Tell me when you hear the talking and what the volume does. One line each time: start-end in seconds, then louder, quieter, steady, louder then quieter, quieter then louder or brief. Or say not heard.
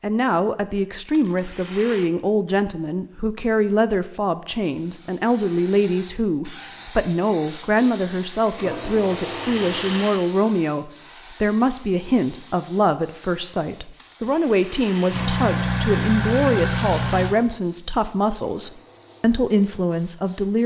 0.0-20.6 steady.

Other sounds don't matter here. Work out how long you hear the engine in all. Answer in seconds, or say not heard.
2 s.